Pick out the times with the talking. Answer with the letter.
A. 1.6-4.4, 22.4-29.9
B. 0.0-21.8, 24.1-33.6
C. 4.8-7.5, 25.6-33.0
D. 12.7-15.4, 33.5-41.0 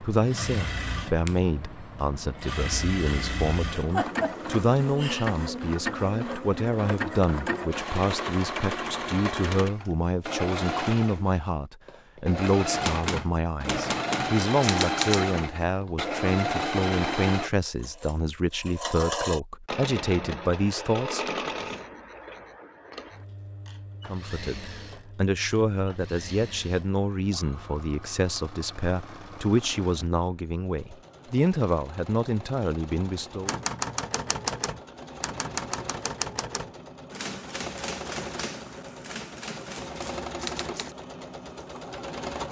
B.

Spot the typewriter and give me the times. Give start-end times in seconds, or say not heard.
12.7-15.4, 33.5-41.0.